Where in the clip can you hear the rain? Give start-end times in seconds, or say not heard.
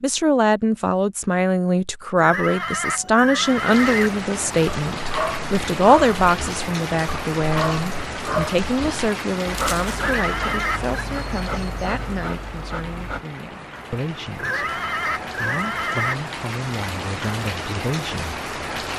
3.3-18.9.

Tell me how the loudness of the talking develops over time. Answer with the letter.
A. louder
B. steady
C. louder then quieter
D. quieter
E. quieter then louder
D.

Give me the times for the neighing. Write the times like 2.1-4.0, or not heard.
2.1-4.1, 9.9-10.9, 14.3-16.1.